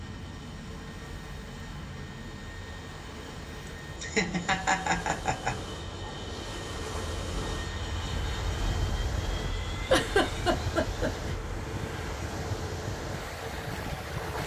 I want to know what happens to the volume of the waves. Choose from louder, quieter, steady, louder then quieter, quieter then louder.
louder.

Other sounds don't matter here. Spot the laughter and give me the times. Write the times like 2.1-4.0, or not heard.
4.0-5.6, 9.9-11.3.